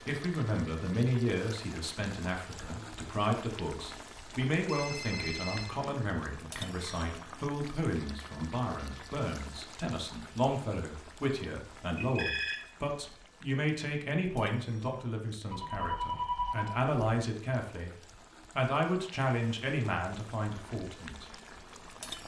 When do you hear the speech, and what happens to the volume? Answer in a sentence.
You can hear the speech from 0.1 to 17.9 s, at a steady volume; and briefly from 18.6 to 21.3 s.